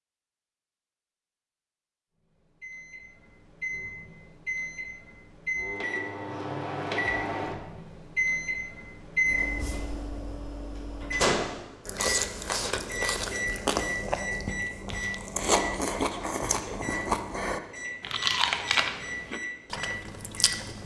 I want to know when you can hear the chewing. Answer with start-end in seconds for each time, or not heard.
11.8-20.8.